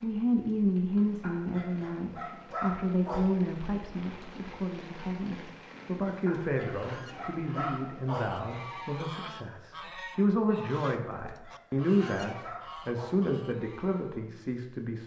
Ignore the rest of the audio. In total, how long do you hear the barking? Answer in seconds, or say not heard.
6 s.